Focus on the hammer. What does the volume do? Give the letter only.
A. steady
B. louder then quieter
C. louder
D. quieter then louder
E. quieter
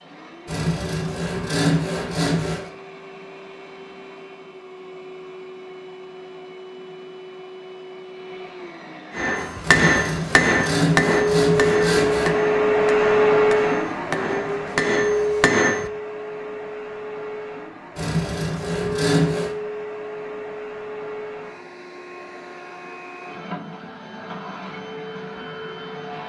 D.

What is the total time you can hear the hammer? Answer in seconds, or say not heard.
7 s.